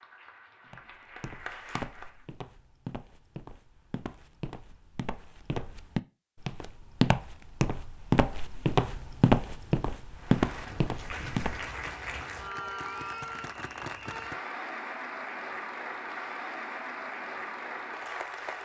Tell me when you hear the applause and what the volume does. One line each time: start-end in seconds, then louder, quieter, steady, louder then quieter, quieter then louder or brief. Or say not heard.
0.0-2.2 brief
10.2-18.6 steady.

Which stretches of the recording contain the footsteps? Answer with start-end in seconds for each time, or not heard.
0.7-11.9.